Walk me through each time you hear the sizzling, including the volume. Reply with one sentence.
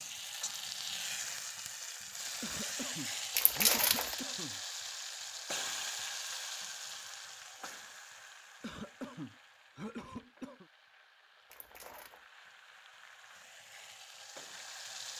You can hear the sizzling from 0.0 to 15.1 s, getting quieter then louder.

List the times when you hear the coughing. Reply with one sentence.
The coughing can be heard from 2.4 to 4.6 s and from 8.6 to 10.7 s.